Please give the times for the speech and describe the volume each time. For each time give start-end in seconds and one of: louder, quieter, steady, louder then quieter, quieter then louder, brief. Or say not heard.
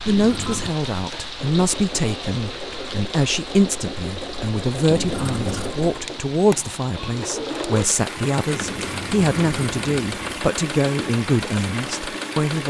0.0-12.6 steady.